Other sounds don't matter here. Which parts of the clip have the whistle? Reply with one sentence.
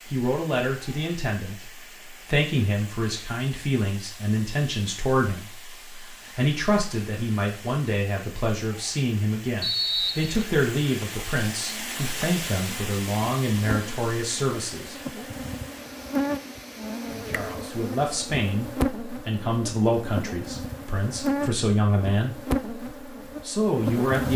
The whistle can be heard from 9.6 to 10.5 s.